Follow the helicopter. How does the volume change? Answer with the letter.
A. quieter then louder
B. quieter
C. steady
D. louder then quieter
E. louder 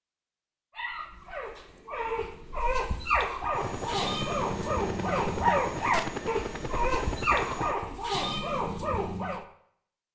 C.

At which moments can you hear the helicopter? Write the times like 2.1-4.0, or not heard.
3.5-7.8.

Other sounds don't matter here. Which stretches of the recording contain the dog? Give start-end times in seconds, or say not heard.
0.8-9.4.